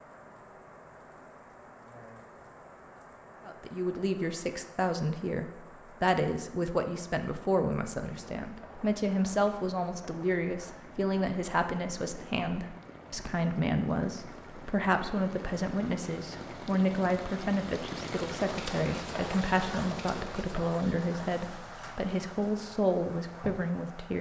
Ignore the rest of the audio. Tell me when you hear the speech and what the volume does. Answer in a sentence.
You can hear the speech from 3.5 to 24.1 s, at a steady volume.